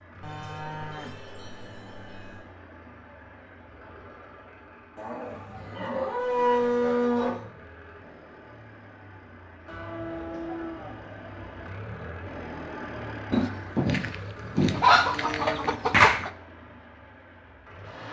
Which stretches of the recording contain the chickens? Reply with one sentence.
The chickens can be heard from 13.3 to 16.3 s.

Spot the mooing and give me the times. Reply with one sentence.
The mooing can be heard from 0.2 to 2.5 s, from 5.0 to 7.4 s, from 9.7 to 11.7 s and from 14.9 to 16.1 s.